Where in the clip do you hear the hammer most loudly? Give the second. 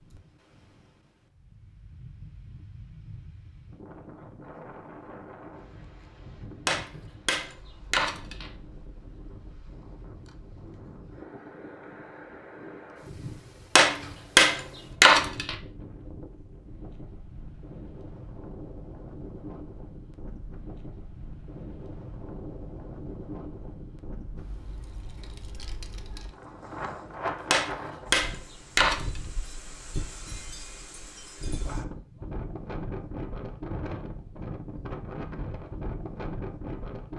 15 s.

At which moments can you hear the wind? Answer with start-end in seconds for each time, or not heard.
0.0-37.1.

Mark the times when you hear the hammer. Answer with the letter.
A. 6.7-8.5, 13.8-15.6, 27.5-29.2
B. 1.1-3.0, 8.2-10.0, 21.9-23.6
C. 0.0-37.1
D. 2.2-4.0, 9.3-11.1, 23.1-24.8
A.